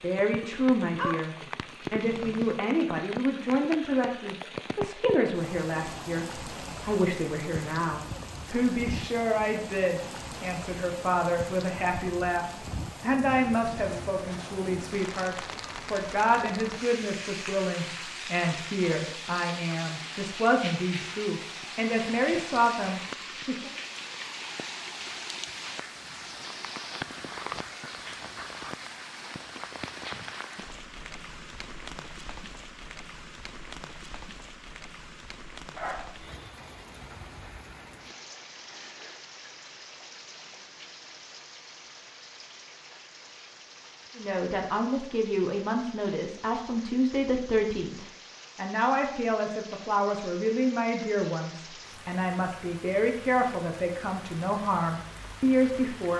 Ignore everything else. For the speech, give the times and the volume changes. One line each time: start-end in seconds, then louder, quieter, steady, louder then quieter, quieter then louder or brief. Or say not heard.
0.0-23.7 steady
44.1-56.1 steady.